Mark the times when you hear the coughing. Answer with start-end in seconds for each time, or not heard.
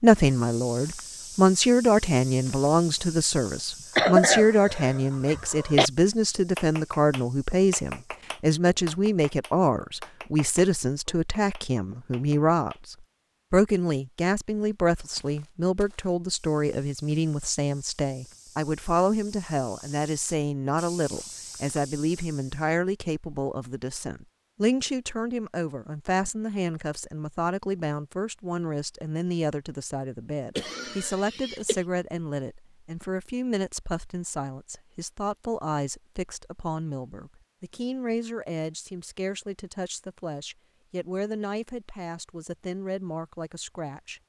4.0-5.9, 30.6-31.8.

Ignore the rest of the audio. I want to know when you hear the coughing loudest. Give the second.
4 s.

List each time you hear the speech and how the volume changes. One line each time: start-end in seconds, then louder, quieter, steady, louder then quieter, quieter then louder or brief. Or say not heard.
0.0-44.2 quieter.